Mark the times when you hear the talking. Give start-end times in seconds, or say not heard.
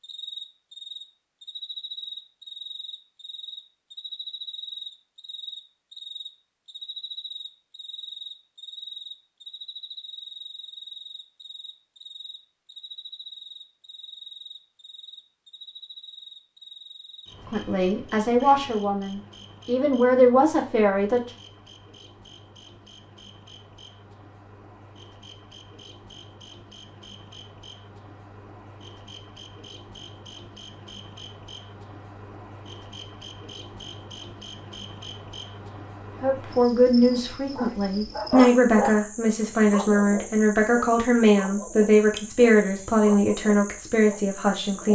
17.5-21.2, 36.2-44.9.